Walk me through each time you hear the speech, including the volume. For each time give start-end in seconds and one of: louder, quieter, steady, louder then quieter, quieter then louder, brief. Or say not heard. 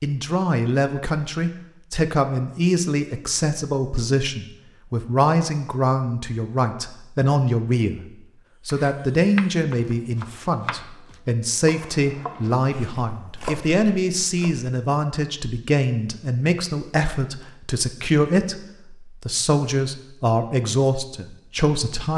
0.0-8.0 steady
8.7-22.1 steady.